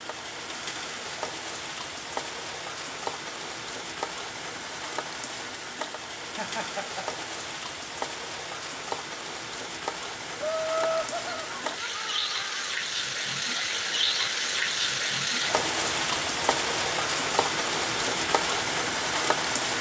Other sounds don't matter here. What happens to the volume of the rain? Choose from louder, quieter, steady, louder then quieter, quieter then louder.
louder.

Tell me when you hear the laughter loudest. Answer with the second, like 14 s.
11 s.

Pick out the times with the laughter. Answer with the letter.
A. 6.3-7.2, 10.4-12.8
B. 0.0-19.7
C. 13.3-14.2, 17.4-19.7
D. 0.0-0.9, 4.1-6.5
A.